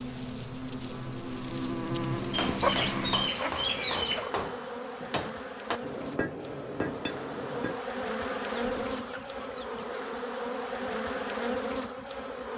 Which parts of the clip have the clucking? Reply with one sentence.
You can hear the clucking from 2.3 to 4.3 s and from 8.2 to 9.8 s.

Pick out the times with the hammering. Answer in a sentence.
The hammering can be heard from 2.1 to 7.8 s.